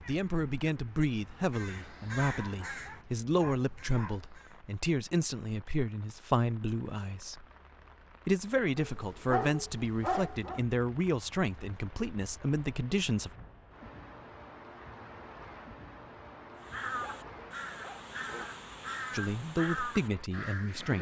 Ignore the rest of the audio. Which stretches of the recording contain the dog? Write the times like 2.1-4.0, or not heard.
2.2-4.2, 8.8-10.6, 16.9-18.5.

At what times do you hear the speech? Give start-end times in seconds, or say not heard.
0.1-7.5, 8.2-13.3, 19.1-20.9.